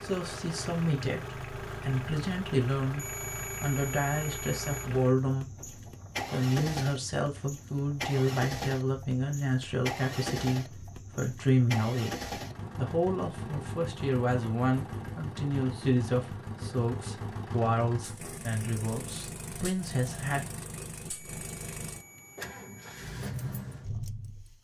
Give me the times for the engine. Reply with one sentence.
You can hear the engine from 0.0 to 24.6 s.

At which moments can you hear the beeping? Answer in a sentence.
The beeping can be heard from 3.0 to 4.9 s and from 21.2 to 23.1 s.